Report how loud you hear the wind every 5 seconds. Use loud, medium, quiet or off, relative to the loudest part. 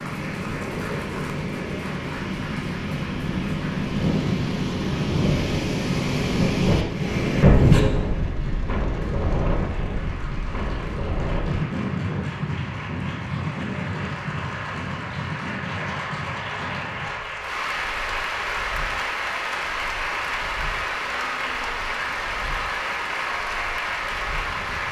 medium, loud, medium, quiet, quiet.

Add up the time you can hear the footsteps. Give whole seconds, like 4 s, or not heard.
not heard.